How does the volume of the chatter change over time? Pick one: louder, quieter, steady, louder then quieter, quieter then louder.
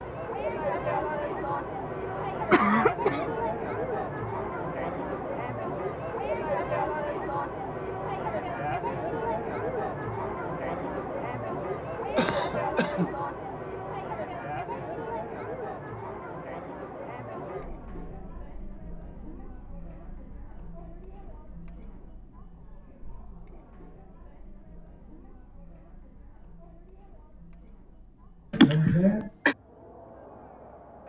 quieter.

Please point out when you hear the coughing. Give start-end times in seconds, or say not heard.
2.1-3.3, 12.2-13.1, 28.5-29.6.